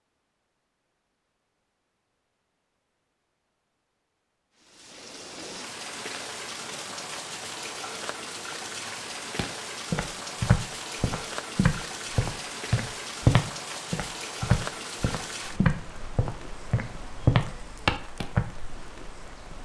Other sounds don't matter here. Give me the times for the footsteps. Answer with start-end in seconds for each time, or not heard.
9.3-18.4.